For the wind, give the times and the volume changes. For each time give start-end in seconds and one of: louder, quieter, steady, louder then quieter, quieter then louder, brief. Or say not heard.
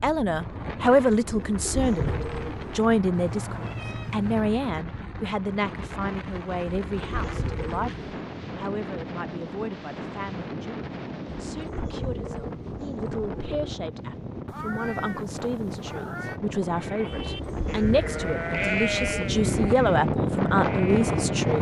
0.0-21.5 louder.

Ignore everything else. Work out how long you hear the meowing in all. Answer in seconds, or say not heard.
3 s.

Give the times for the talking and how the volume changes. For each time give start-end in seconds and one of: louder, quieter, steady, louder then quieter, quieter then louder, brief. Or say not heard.
0.0-21.5 quieter then louder.